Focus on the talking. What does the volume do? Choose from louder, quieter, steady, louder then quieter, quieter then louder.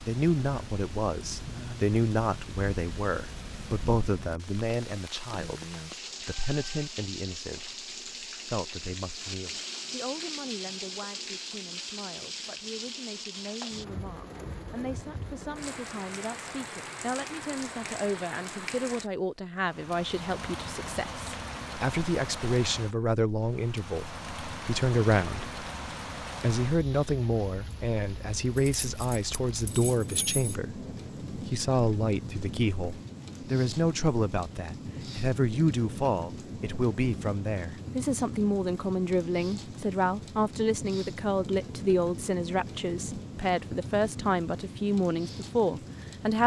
quieter then louder.